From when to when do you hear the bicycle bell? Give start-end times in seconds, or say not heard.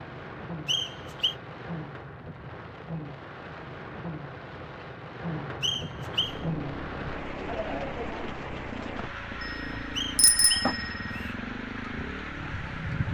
9.4-11.2.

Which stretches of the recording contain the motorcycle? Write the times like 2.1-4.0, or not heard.
6.2-13.0.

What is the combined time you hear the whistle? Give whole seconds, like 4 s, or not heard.
3 s.